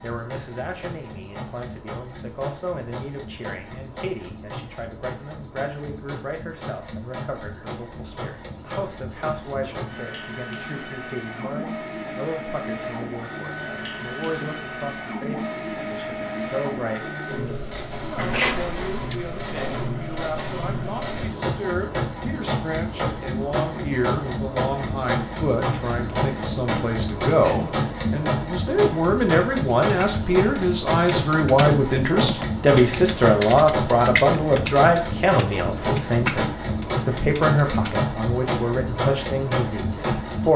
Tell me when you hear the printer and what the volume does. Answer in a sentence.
The printer can be heard from 0.0 to 40.5 s, getting louder.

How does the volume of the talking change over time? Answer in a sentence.
The volume of the talking goes up.